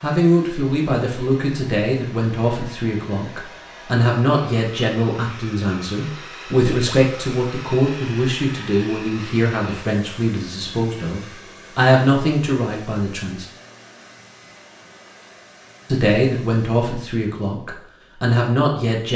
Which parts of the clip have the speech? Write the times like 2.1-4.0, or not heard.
0.0-13.4, 15.8-19.1.